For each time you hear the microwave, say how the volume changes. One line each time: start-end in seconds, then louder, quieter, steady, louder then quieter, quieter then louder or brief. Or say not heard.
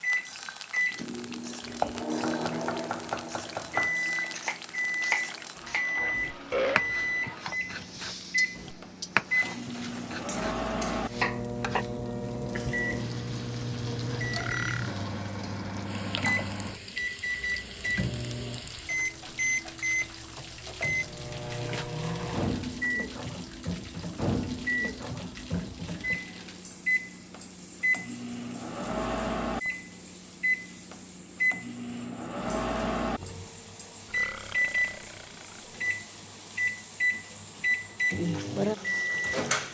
0.0-39.6 steady.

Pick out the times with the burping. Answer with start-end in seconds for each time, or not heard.
5.2-6.8, 14.3-14.9, 34.1-35.6.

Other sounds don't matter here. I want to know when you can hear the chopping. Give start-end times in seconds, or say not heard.
1.6-11.8, 38.3-39.6.